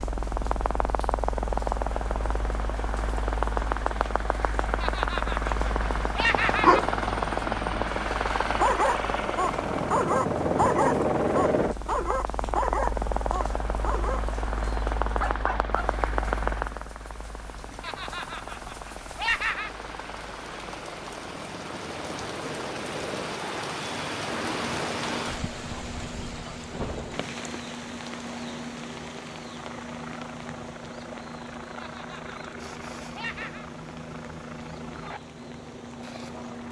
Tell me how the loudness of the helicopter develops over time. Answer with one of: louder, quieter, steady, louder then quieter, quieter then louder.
quieter.